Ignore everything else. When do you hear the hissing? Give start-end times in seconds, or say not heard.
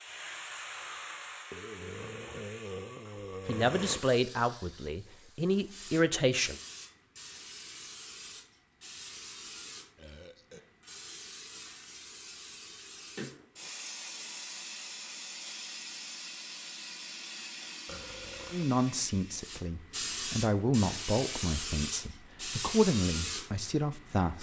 0.0-24.3.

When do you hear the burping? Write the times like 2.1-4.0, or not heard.
1.5-4.0, 9.9-10.6, 17.9-18.8.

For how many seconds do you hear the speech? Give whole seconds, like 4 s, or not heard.
9 s.